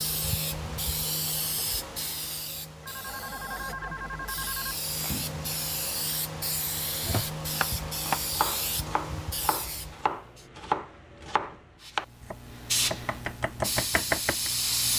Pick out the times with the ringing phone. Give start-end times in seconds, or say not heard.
2.8-4.8.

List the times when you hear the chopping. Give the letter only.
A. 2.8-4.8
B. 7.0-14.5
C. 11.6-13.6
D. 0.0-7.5
B.